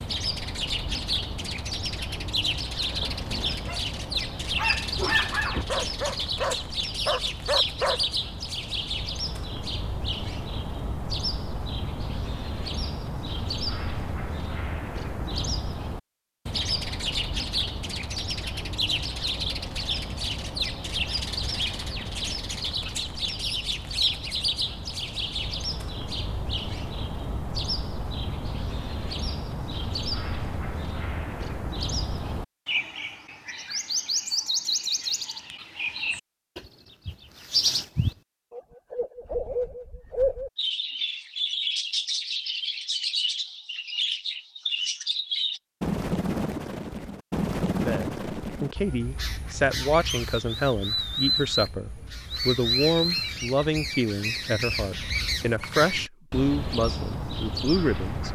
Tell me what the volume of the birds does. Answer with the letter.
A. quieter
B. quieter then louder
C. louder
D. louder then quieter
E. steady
E.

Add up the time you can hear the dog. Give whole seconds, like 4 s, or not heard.
5 s.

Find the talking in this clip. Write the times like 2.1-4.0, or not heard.
47.7-58.3.